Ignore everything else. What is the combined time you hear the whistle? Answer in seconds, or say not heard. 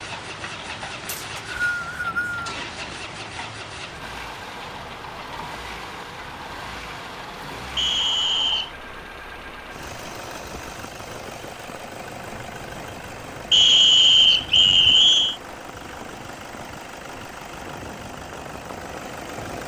4 s.